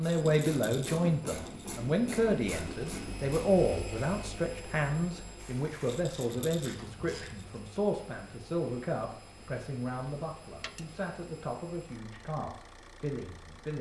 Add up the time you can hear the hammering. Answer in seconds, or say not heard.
not heard.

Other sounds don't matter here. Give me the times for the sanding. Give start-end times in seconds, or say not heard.
not heard.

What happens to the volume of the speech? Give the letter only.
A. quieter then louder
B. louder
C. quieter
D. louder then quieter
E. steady
C.